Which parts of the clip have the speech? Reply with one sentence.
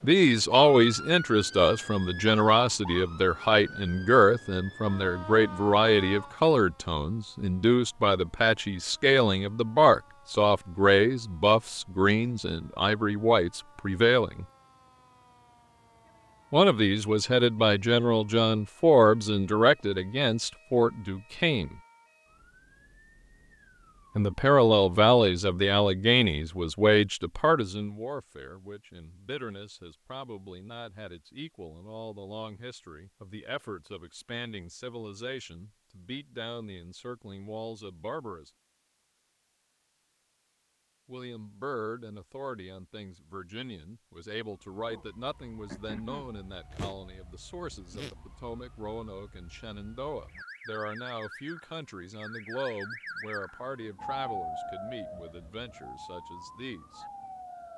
You can hear the speech from 0.0 to 14.4 s, from 16.5 to 21.8 s, from 24.1 to 38.5 s and from 41.0 to 57.0 s.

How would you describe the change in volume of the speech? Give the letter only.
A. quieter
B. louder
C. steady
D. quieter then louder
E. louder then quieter
A.